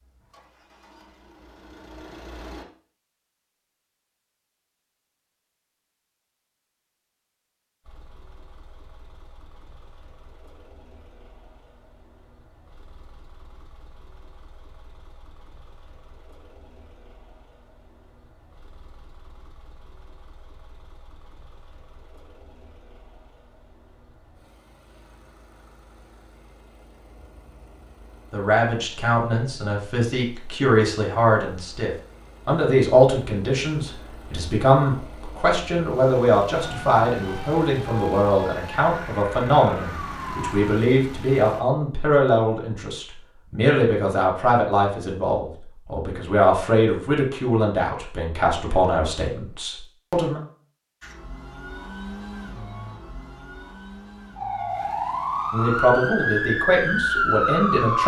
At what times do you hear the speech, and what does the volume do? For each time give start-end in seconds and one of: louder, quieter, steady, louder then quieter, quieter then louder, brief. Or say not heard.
28.3-50.4 steady
55.5-58.0 brief.